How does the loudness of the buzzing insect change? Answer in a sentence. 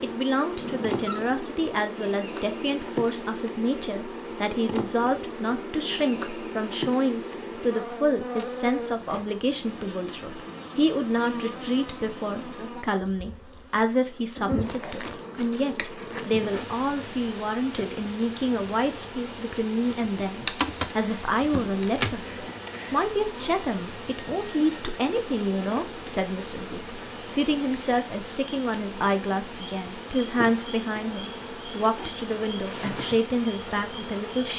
The loudness of the buzzing insect stays about the same.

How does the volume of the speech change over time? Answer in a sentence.
The volume of the speech stays about the same.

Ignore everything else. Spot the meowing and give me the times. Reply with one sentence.
You can hear the meowing from 0.6 to 1.2 s.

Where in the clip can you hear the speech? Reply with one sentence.
The speech can be heard from 0.0 to 34.5 s.